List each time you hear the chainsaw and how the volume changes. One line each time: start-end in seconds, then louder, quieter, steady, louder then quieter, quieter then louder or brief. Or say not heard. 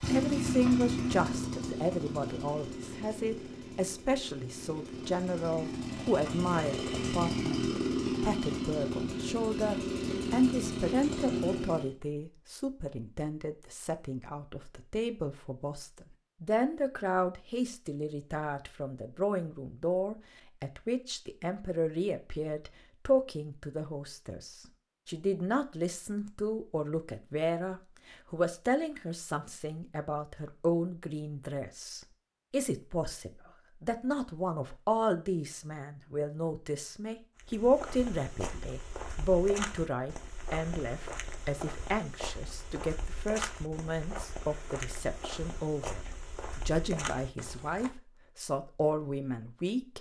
0.0-11.9 quieter then louder.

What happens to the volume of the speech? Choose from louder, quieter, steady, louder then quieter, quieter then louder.
steady.